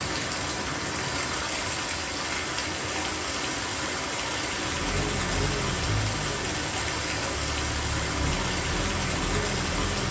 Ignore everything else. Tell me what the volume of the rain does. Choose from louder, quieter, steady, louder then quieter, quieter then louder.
steady.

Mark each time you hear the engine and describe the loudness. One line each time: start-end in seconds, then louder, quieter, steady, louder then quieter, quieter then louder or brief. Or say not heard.
4.5-10.0 quieter then louder.